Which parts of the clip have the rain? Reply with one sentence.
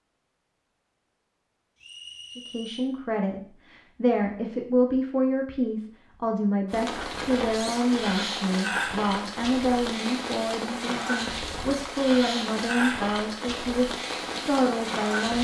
The rain can be heard from 6.7 to 15.3 s.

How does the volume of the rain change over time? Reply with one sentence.
The volume of the rain stays about the same.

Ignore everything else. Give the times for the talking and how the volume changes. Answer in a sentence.
You can hear the talking from 2.4 to 15.3 s, at a steady volume.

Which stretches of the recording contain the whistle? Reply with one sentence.
The whistle can be heard from 1.8 to 2.9 s.